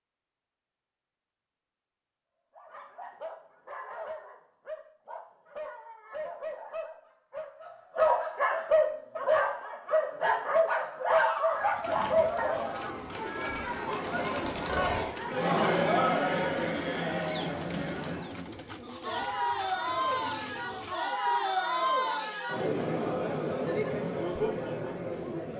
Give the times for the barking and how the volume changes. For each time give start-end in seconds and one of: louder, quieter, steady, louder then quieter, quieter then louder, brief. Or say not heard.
2.5-12.8 louder.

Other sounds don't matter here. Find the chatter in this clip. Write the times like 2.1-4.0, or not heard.
12.1-25.5.